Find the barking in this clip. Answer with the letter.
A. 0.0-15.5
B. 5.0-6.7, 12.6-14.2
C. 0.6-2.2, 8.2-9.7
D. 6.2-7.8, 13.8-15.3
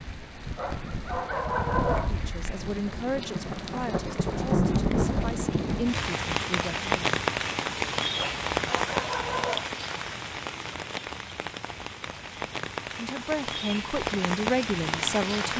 C.